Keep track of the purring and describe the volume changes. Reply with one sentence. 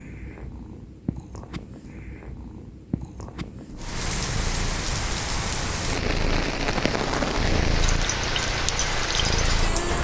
The loudness of the purring goes up.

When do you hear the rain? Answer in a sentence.
You can hear the rain from 3.8 to 9.9 s.